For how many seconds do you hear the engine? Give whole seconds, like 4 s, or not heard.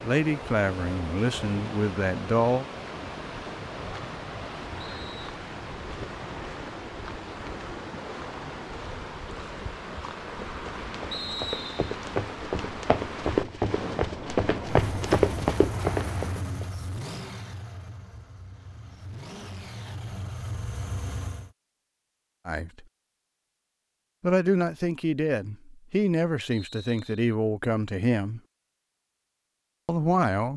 7 s.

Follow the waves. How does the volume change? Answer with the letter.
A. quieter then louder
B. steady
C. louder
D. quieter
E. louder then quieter
B.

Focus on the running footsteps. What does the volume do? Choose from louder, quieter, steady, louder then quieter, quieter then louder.
louder.